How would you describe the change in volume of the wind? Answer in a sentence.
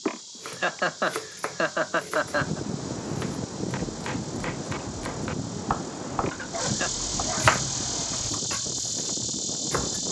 The volume of the wind goes down.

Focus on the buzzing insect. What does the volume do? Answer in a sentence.
The loudness of the buzzing insect goes up.